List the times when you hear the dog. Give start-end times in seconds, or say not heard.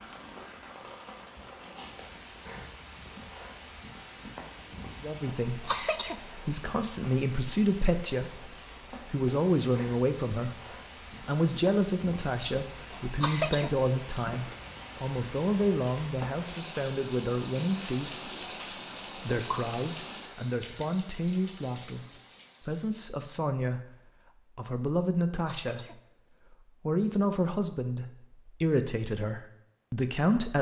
not heard.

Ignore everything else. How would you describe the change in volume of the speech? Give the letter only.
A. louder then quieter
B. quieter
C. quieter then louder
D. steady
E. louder
D.